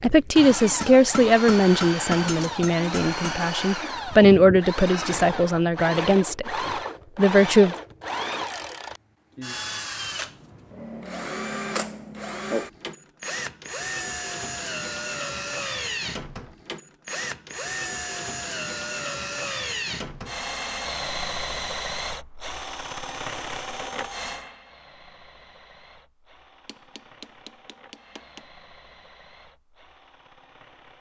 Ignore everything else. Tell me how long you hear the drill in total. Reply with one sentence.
The drill can be heard for 31 seconds in total.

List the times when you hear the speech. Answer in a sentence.
The speech can be heard from 0.0 to 6.5 s and from 7.2 to 7.8 s.